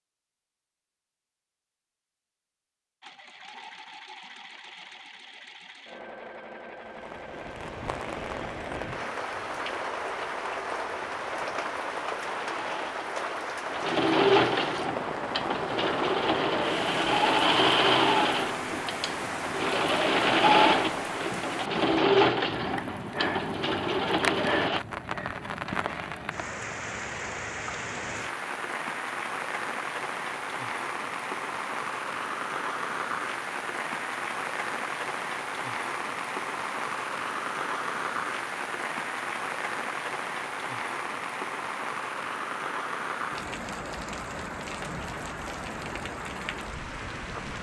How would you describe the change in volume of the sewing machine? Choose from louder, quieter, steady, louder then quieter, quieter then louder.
louder.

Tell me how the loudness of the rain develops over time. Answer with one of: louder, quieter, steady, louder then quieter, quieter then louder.
steady.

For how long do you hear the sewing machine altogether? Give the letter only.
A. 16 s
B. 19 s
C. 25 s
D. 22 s
D.